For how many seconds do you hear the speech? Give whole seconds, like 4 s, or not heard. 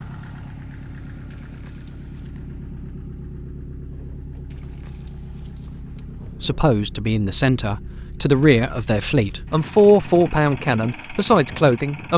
6 s.